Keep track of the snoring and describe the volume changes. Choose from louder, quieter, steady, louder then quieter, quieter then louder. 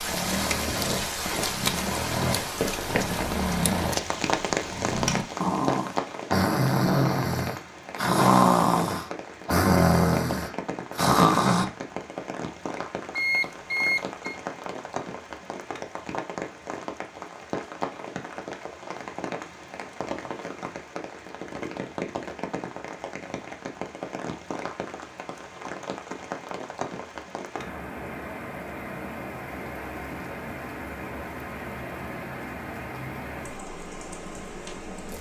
louder.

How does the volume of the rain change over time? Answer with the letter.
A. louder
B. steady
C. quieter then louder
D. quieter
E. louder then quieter
D.